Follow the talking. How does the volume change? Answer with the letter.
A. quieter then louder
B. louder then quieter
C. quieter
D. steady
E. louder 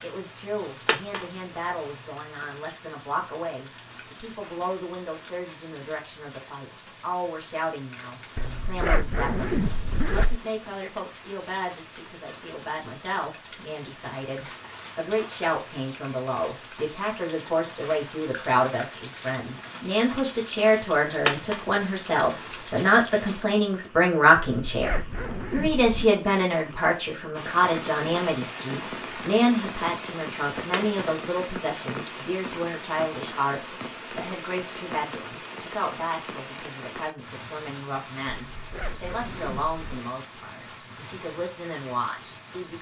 B.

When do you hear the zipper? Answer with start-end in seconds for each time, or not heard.
8.3-10.4, 24.4-26.1, 38.5-40.0.